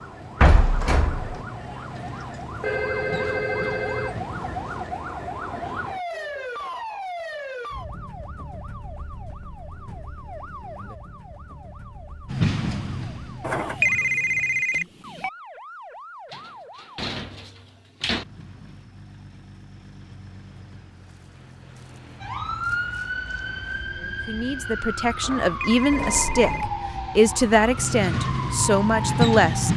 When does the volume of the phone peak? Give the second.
14 s.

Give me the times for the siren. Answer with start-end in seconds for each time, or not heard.
0.0-16.9, 22.2-29.7.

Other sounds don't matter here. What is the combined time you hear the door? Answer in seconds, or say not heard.
4 s.